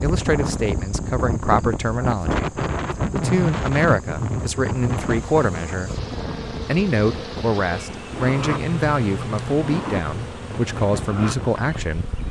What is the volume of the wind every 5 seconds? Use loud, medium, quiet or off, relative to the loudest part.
loud, medium, medium.